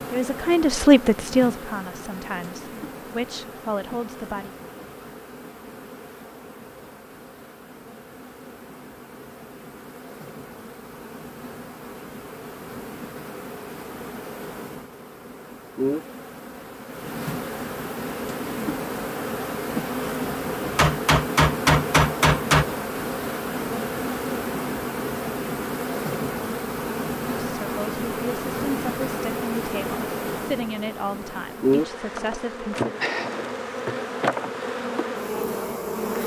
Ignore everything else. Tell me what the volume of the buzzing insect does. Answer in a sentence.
The volume of the buzzing insect goes up.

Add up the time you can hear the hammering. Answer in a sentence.
You can hear the hammering for 2 seconds altogether.